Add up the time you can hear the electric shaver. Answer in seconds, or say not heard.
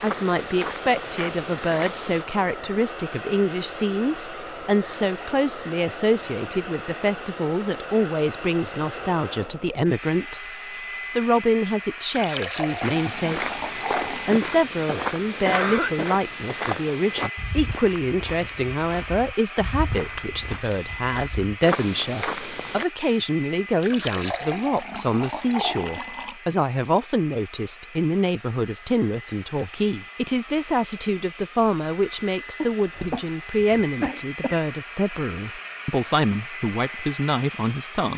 not heard.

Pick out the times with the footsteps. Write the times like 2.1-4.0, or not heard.
0.0-2.2, 12.8-22.9.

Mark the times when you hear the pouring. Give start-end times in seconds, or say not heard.
12.1-14.4, 23.8-26.4.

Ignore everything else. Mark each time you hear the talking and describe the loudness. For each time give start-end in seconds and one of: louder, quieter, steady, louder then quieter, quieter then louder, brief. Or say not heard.
0.0-10.4 steady
11.2-38.1 steady.